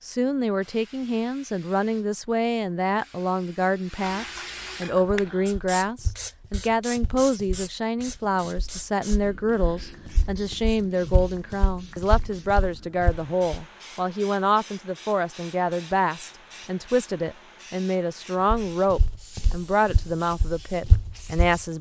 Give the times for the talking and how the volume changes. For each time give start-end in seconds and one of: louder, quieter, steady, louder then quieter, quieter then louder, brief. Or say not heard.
0.0-21.7 steady.